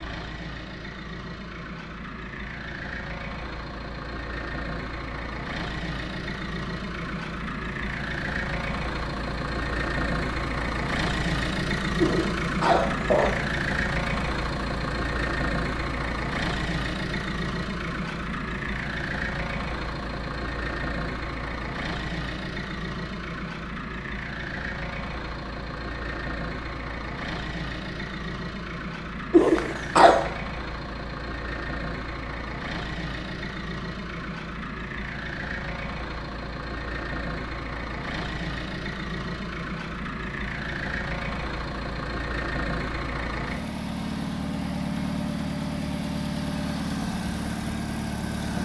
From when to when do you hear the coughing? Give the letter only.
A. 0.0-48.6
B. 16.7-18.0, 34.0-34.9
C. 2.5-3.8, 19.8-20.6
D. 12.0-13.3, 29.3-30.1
D.